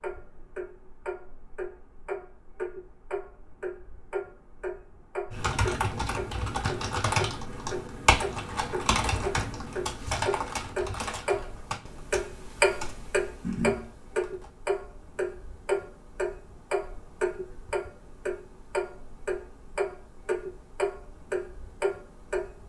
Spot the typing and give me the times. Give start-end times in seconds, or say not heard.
5.3-14.5.